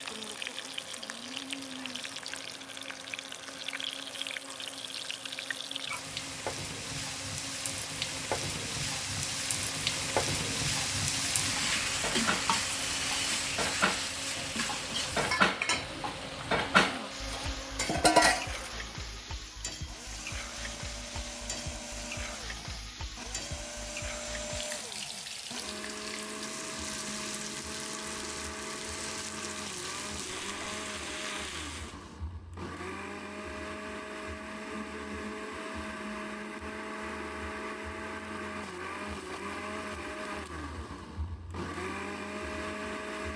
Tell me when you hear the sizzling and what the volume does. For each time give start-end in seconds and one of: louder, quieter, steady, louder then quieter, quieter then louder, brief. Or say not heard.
0.0-32.1 louder then quieter.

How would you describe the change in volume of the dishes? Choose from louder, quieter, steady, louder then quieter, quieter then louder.
louder.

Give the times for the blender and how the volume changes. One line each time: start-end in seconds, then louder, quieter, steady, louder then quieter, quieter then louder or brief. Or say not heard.
0.0-43.3 louder.